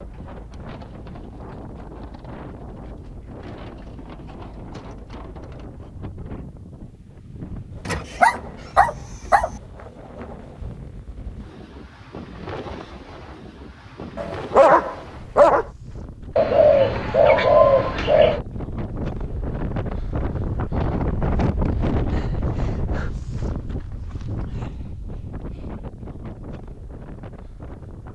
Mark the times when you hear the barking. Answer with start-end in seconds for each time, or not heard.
7.8-9.5, 14.2-15.7.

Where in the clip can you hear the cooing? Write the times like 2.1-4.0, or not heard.
16.4-18.4.